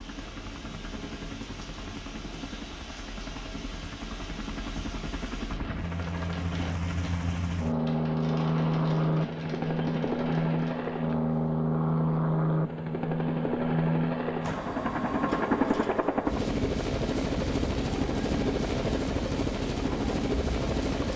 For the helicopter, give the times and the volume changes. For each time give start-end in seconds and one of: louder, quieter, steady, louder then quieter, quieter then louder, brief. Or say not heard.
0.0-21.1 louder.